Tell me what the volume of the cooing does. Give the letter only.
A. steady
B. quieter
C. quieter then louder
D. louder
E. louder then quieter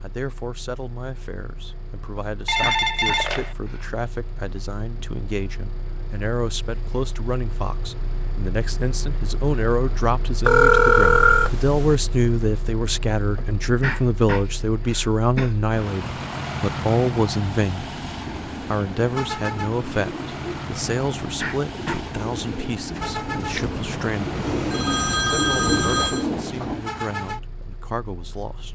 D.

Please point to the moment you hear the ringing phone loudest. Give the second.
11 s.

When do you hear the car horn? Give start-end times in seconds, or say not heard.
not heard.